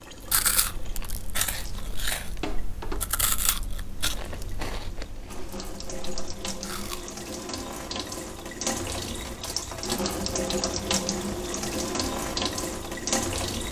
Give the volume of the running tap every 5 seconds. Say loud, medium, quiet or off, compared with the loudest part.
quiet, medium, loud.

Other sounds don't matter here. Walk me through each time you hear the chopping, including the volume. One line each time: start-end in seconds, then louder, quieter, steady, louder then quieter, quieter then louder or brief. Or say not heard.
not heard.